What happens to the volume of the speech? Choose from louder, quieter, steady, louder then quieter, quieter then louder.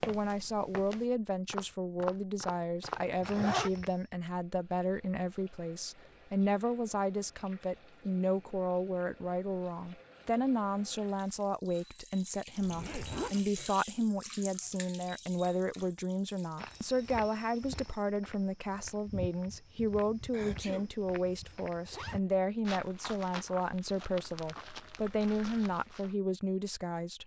steady.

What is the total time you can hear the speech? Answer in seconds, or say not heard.
27 s.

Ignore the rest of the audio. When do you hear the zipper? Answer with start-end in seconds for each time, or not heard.
2.8-3.7, 12.6-13.3, 21.7-22.4.